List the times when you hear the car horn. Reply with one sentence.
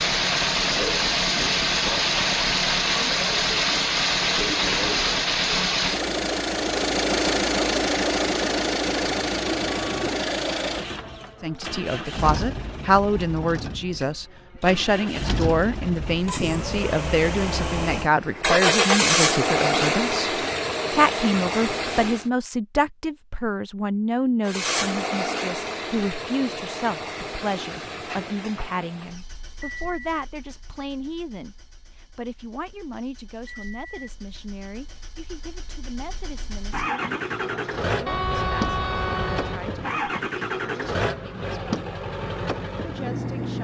The car horn can be heard from 9.3 to 10.2 s and from 38.0 to 39.6 s.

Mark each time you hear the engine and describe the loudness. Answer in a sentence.
You can hear the engine from 0.0 to 22.2 s, getting quieter then louder; and from 24.4 to 43.5 s, getting quieter then louder.